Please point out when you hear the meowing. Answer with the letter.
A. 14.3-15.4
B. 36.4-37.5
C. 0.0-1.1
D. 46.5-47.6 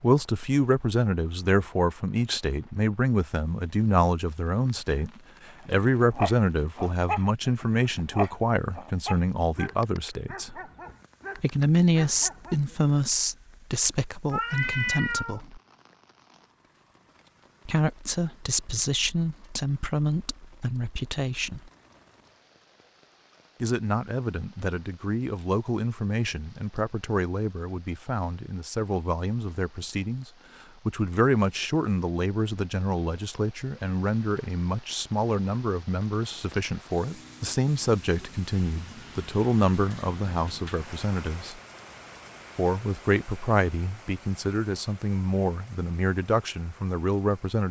A.